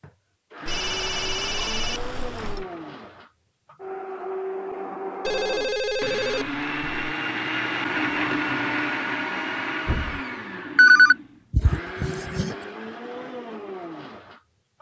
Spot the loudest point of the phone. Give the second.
11 s.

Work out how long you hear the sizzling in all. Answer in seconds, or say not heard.
not heard.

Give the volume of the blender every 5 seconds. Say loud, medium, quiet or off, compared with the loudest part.
medium, loud, medium.